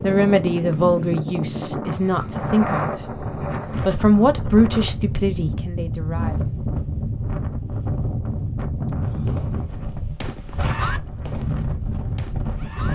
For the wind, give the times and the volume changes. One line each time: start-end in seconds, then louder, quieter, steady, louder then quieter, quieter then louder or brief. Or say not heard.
0.0-12.9 steady.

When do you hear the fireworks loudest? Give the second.
11 s.